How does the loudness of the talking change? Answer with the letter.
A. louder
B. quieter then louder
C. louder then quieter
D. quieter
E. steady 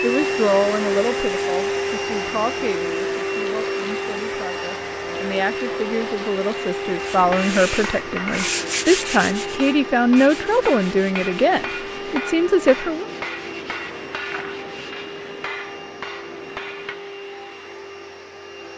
B.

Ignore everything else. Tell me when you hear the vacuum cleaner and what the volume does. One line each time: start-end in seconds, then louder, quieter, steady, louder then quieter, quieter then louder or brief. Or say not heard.
0.0-18.7 quieter.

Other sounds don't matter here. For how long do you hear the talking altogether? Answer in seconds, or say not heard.
13 s.